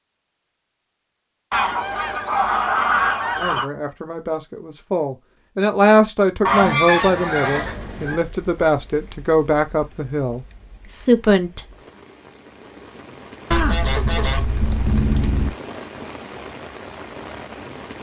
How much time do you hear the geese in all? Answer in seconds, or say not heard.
6 s.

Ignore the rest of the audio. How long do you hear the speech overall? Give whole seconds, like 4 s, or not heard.
8 s.